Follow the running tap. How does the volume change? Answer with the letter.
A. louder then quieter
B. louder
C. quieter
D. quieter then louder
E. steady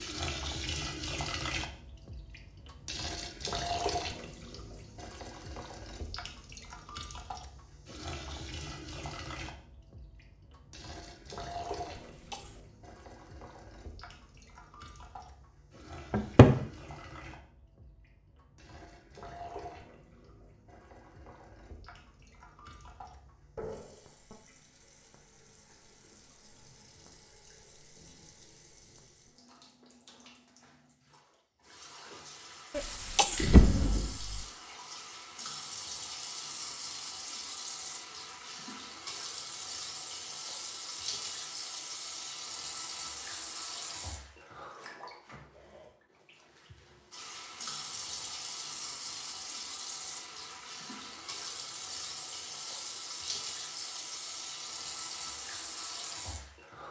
D.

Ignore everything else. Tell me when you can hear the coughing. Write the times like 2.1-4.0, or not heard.
11.9-12.6, 32.7-33.5.